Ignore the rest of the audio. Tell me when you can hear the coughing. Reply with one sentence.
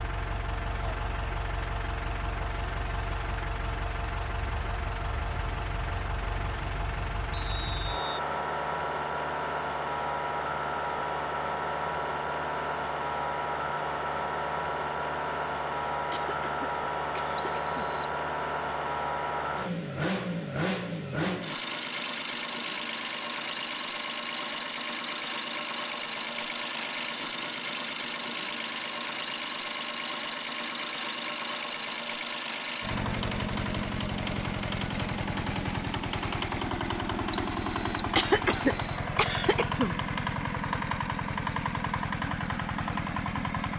The coughing can be heard from 16.1 to 17.8 s and from 38.1 to 40.0 s.